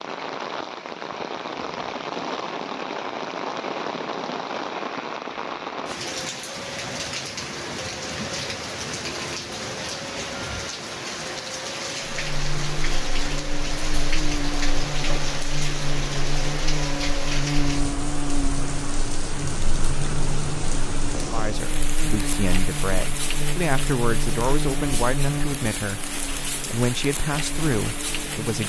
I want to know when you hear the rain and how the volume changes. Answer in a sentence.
The rain can be heard from 0.0 to 28.6 s, at a steady volume.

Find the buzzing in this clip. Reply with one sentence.
You can hear the buzzing from 12.1 to 28.6 s.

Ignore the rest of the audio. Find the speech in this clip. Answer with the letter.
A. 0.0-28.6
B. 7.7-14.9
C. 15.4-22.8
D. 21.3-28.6
D.